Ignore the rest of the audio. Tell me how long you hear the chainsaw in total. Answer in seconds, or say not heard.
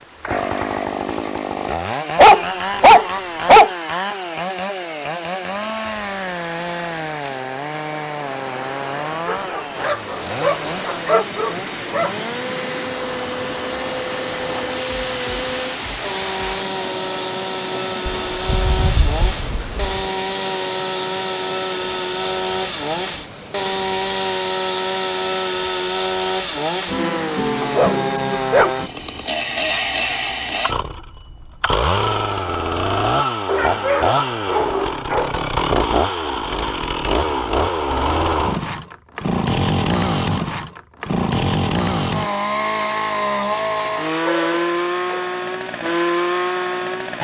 47 s.